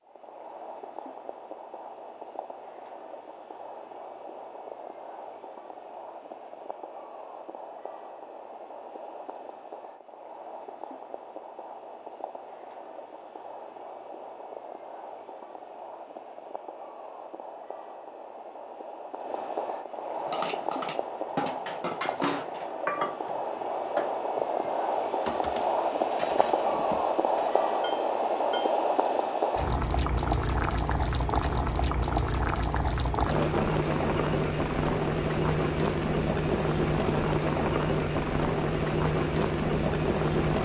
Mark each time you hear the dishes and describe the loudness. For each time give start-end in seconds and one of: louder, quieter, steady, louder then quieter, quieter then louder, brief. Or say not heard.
20.2-29.2 quieter.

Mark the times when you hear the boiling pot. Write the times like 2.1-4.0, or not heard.
0.0-40.6.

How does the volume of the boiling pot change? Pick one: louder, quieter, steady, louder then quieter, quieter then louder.
louder.